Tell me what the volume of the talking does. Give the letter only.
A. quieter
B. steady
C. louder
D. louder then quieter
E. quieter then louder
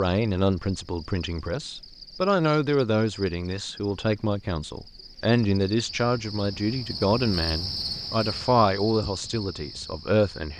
B.